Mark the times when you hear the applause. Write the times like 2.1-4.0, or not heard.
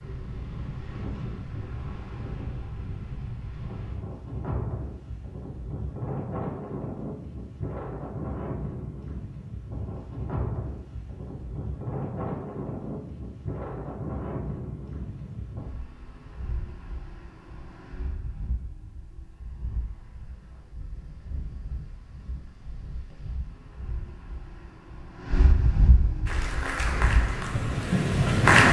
26.2-28.6.